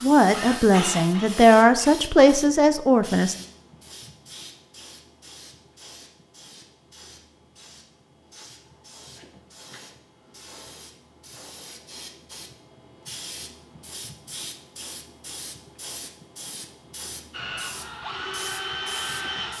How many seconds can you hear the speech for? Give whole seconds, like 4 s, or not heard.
3 s.